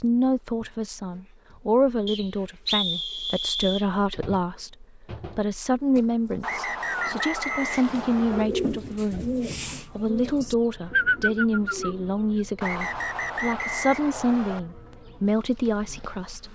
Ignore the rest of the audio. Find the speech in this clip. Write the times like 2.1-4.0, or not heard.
0.0-16.4.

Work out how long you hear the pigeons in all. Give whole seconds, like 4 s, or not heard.
5 s.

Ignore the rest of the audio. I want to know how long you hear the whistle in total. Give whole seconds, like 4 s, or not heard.
6 s.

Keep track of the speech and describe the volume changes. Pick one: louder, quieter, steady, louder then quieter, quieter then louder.
steady.